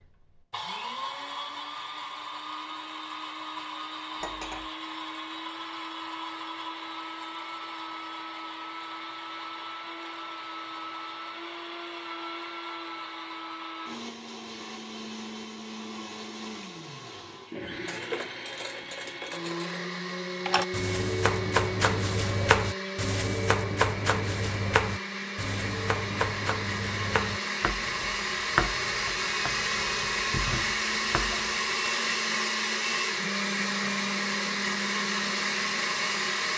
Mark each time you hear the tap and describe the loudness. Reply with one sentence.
The tap can't be heard in this clip.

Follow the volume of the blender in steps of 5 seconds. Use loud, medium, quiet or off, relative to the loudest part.
medium, medium, medium, medium, medium, loud, loud, loud.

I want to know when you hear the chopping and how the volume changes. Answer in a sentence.
You can hear the chopping from 20.4 to 31.9 s, getting quieter.